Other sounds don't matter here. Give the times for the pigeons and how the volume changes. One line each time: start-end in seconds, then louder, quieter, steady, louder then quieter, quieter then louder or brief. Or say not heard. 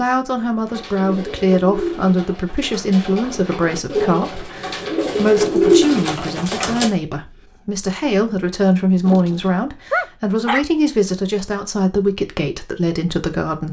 0.7-6.9 quieter then louder.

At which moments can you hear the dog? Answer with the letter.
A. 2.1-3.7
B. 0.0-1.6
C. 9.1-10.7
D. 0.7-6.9
C.